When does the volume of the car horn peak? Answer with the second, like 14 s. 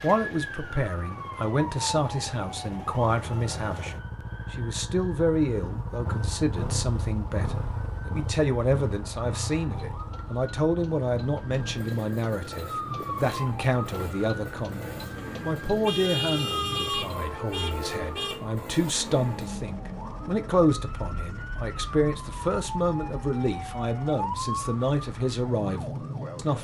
16 s.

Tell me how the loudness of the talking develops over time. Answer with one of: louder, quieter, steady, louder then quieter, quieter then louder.
steady.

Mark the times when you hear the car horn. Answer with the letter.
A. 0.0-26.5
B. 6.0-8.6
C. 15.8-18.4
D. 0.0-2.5
C.